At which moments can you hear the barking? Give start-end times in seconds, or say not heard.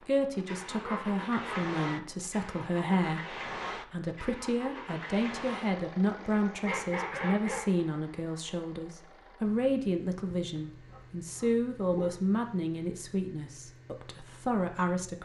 0.8-2.1, 6.7-7.7, 10.3-12.2.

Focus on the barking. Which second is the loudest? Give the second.
7 s.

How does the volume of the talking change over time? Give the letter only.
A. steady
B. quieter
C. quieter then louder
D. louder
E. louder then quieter
A.